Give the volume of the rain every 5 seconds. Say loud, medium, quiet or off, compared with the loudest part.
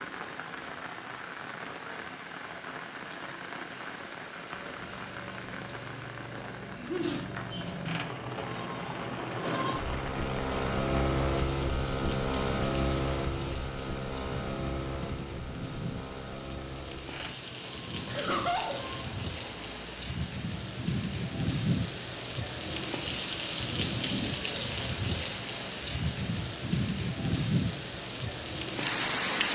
medium, medium, medium, medium, loud, loud.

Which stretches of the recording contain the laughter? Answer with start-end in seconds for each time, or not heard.
6.7-7.2, 18.1-18.8.